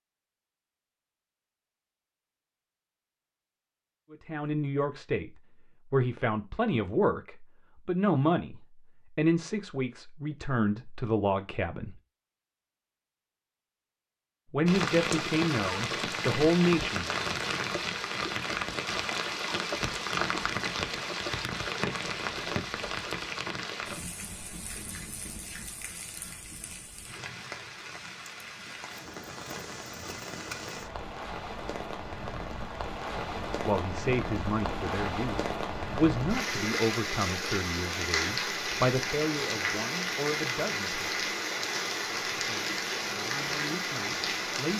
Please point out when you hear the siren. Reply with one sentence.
The siren can't be heard in this clip.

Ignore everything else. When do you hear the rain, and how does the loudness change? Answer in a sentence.
You can hear the rain from 14.7 to 44.7 s, getting quieter then louder.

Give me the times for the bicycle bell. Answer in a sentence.
You can't hear the bicycle bell here.